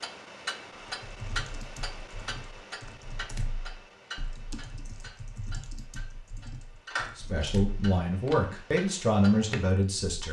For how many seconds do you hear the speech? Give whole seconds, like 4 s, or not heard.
3 s.